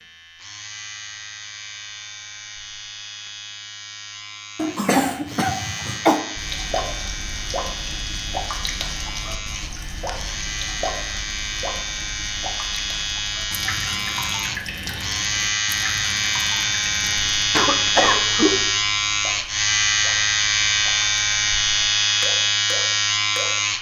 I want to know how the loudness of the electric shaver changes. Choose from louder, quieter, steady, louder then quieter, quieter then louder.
louder.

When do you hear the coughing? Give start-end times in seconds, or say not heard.
4.5-6.2, 17.5-18.6.